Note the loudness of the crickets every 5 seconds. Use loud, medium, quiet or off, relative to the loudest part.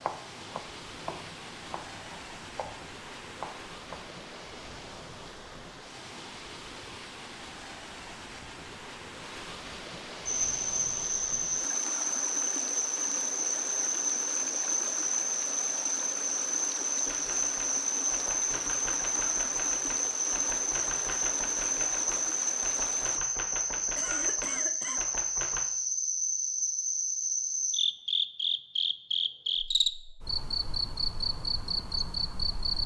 off, off, loud, loud, loud, loud, loud.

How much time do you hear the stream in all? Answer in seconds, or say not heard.
23 s.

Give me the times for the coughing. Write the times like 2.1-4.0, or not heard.
23.9-25.1.